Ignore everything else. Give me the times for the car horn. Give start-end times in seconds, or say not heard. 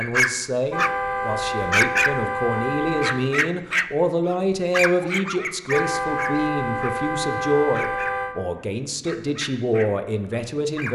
0.7-3.3, 5.7-8.3.